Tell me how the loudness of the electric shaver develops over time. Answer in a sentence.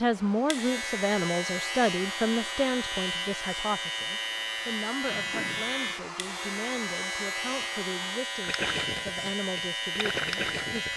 The loudness of the electric shaver stays about the same.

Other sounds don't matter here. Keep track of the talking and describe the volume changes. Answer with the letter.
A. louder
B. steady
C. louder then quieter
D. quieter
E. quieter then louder
D.